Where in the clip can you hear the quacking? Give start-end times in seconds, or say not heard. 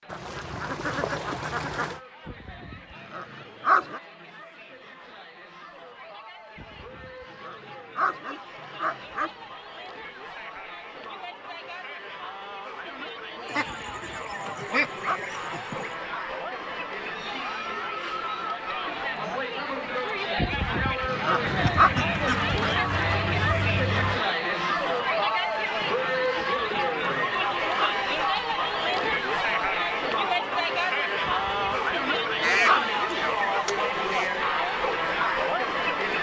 0.1-2.0, 13.4-15.9, 21.4-24.2, 32.4-34.3.